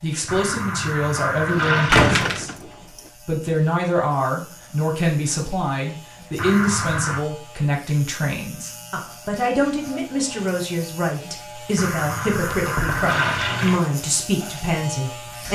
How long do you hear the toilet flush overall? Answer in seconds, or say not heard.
5 s.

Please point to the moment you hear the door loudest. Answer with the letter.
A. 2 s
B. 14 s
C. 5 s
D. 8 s
A.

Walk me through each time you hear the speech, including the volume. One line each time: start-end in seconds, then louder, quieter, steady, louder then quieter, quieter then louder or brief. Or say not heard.
0.0-15.4 steady.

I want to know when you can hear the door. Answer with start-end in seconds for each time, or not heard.
1.9-2.6, 12.6-13.2.